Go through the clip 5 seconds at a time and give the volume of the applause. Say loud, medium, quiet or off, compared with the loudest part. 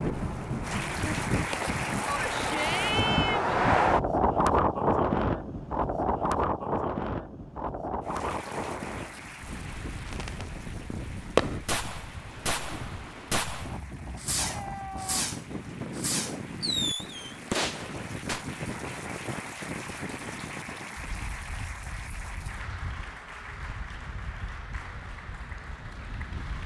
loud, medium, quiet, medium, medium, medium.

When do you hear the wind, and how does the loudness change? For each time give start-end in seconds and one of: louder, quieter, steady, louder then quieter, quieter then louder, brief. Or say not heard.
0.0-26.6 quieter.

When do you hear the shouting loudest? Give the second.
3 s.